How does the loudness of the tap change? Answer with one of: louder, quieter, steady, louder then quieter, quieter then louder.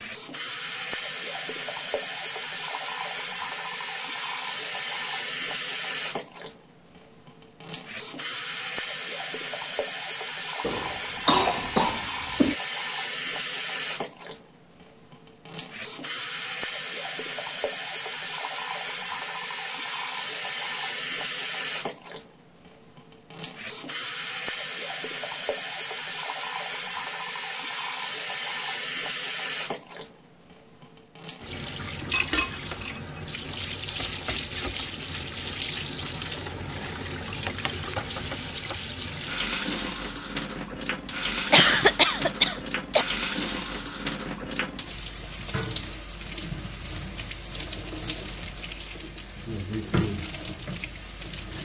steady.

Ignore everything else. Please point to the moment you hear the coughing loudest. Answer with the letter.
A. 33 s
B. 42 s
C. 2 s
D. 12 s
B.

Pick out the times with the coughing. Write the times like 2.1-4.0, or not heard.
10.6-12.6, 41.5-43.0.